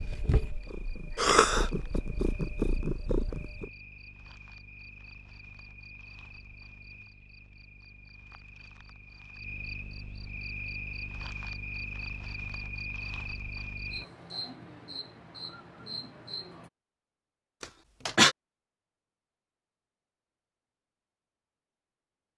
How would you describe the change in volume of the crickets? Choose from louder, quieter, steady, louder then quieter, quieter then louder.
louder.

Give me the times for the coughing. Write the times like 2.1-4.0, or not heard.
1.1-1.6, 17.6-18.4.